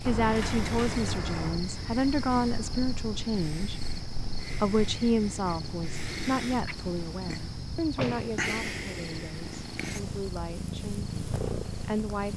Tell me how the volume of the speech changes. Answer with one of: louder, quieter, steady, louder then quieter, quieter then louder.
quieter.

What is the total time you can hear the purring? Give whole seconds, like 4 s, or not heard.
12 s.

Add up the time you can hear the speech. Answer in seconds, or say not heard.
12 s.